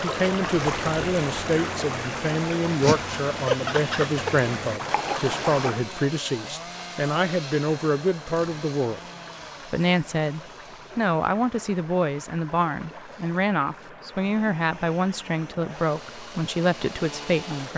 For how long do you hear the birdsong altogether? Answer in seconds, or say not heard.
not heard.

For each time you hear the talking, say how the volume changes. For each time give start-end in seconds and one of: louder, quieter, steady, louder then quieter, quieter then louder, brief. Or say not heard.
0.0-9.0 steady
9.7-17.7 steady.